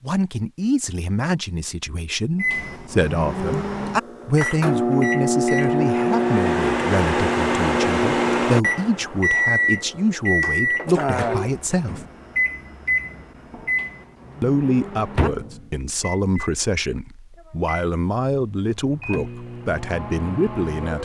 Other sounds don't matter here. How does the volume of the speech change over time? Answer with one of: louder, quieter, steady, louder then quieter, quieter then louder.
steady.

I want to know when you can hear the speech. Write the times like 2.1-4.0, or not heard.
0.0-3.6, 4.2-12.1, 14.4-21.0.